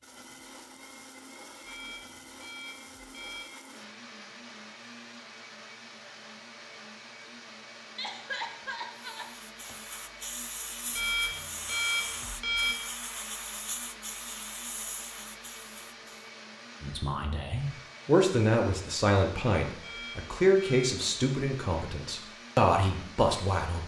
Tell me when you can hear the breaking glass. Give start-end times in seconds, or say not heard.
not heard.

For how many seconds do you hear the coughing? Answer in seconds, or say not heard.
2 s.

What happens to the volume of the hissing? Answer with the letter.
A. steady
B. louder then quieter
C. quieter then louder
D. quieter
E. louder
A.